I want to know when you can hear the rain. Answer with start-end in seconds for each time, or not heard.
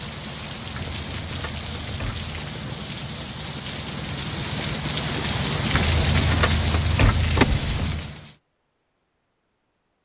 0.0-8.3.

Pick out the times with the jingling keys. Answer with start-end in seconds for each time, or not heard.
0.7-2.5, 5.7-8.1.